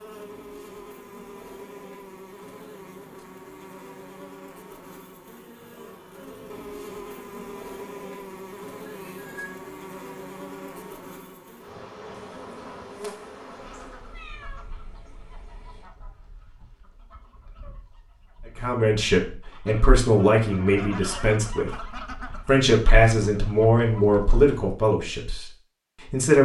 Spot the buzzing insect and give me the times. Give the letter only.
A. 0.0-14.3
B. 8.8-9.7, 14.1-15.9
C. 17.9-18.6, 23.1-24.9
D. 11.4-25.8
A.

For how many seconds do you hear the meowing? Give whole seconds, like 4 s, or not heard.
3 s.